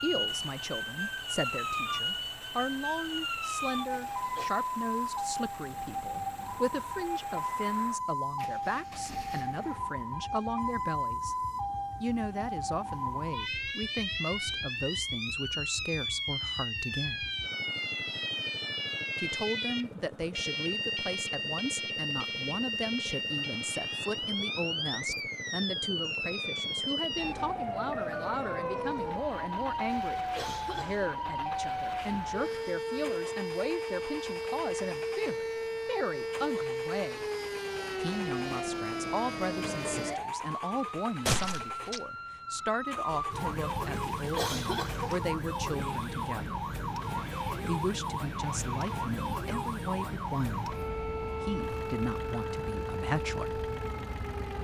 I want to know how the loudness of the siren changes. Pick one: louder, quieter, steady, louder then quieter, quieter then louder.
steady.